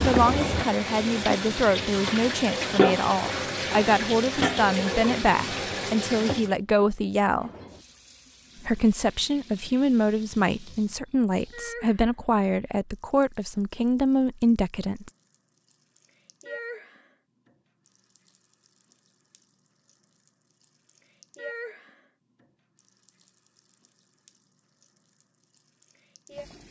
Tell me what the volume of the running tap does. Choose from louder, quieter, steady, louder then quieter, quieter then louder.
quieter.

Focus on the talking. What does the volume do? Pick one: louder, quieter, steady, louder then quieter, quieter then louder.
steady.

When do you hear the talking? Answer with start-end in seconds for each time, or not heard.
0.0-7.5, 8.6-15.1.